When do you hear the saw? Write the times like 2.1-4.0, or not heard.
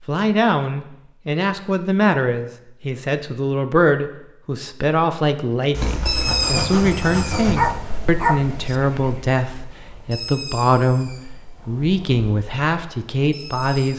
5.7-7.8.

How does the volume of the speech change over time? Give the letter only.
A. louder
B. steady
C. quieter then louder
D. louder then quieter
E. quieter
B.